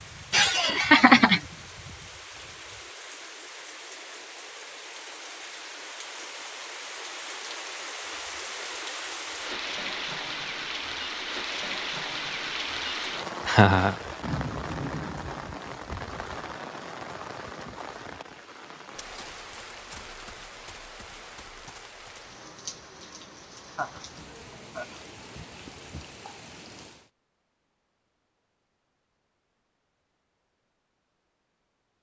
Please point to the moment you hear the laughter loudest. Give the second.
1 s.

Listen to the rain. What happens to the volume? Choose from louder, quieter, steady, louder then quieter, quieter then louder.
louder then quieter.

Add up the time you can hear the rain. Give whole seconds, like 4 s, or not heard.
27 s.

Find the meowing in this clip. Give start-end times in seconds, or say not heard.
not heard.